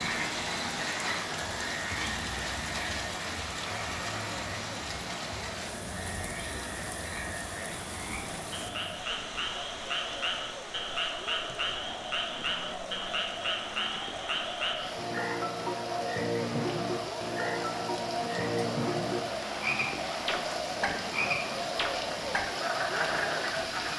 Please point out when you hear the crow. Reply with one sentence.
You can't hear the crow here.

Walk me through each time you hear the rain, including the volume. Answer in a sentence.
The rain can be heard from 0.0 to 23.9 s, getting quieter then louder.